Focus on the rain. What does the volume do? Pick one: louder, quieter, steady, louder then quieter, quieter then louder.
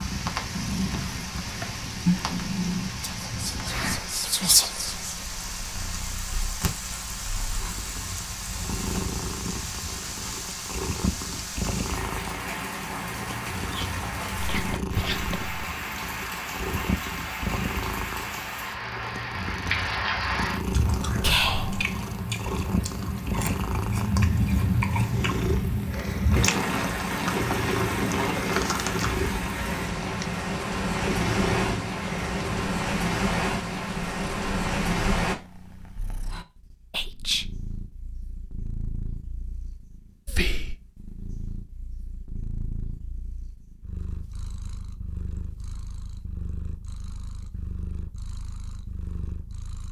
louder.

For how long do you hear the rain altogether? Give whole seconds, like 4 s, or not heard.
35 s.